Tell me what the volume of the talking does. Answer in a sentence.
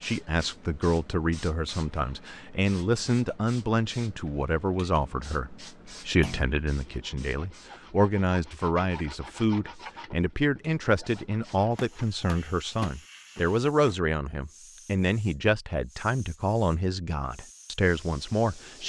The loudness of the talking stays about the same.